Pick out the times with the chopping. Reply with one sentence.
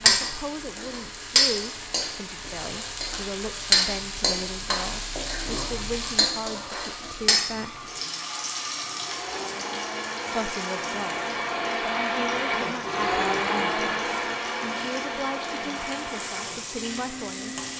You can't hear the chopping here.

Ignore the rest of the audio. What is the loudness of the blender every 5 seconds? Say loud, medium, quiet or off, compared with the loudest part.
quiet, medium, loud, medium.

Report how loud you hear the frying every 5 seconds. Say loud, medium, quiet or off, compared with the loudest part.
loud, medium, quiet, quiet.